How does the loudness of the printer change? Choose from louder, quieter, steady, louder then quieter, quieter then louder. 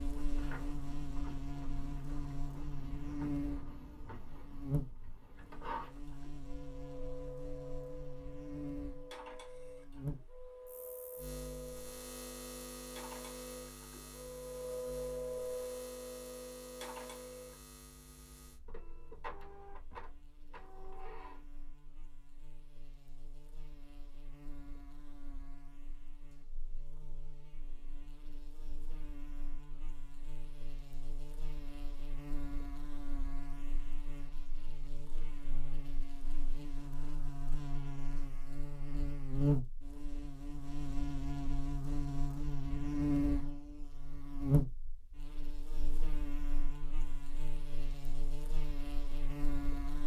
louder then quieter.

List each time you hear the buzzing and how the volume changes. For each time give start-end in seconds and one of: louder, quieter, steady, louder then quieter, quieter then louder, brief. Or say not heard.
0.0-50.0 quieter then louder.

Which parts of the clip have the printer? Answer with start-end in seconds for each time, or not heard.
0.0-21.4.